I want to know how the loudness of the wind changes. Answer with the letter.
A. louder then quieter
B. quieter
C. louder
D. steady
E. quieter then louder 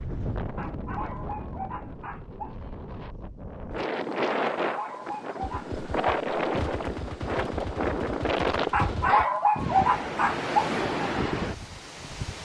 C.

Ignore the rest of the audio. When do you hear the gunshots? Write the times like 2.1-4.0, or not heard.
5.4-9.2.